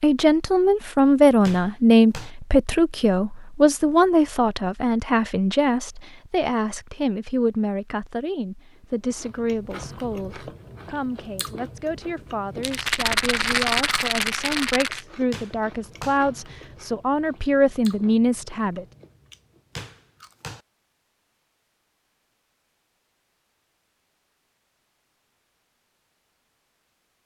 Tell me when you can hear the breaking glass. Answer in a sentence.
The breaking glass can't be heard in this clip.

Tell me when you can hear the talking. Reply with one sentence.
You can hear the talking from 0.0 to 18.9 s.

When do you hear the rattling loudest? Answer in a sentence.
The loudest moment of the rattling is at 14 seconds.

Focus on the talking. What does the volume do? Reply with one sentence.
The volume of the talking goes down, then up.